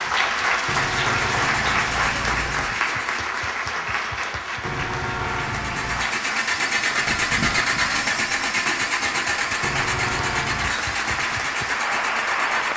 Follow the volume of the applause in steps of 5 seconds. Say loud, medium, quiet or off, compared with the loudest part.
loud, medium, loud.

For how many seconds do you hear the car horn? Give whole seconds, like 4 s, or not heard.
5 s.